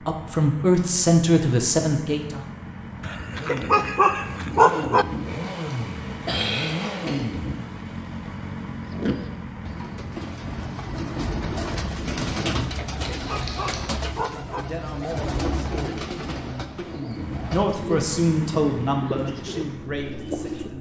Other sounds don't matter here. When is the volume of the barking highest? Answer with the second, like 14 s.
5 s.